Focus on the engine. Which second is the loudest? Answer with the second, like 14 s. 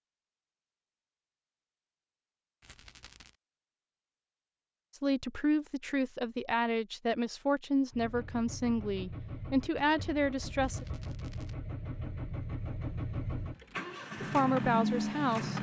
15 s.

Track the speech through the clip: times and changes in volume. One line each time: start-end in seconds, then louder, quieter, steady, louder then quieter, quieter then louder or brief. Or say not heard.
5.0-10.8 steady
14.2-15.5 brief.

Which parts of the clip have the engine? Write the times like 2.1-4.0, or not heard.
7.9-15.5.